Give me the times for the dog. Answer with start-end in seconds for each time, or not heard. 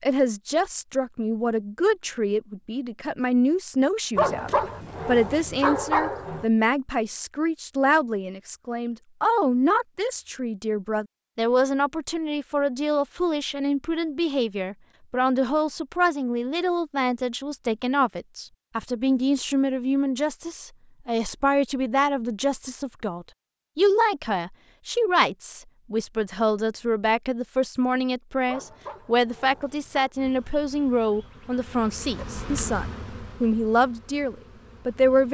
4.2-6.5, 28.4-30.1.